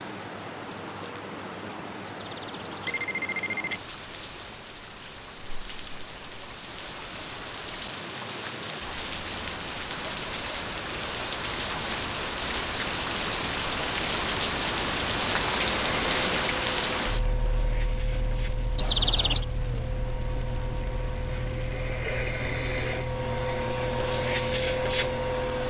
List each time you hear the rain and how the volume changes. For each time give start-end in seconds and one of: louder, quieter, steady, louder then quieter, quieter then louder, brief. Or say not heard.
0.0-25.6 louder then quieter.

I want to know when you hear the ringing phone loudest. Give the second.
19 s.